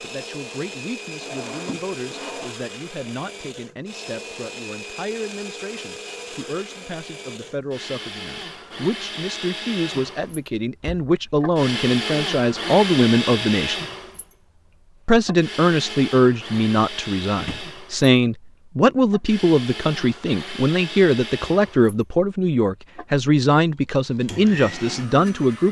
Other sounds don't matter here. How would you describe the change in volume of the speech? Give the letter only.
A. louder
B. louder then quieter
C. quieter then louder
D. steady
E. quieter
A.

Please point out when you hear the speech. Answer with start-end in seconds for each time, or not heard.
0.0-13.8, 15.1-25.6.